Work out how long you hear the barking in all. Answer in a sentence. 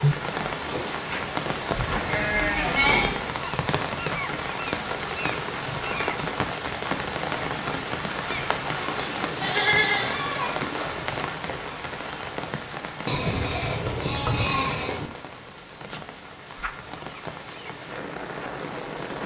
You can't hear the barking here.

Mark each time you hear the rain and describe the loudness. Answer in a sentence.
The rain can be heard from 0.0 to 19.2 s, getting quieter.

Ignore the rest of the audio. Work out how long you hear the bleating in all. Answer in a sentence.
You can hear the bleating for 5 seconds altogether.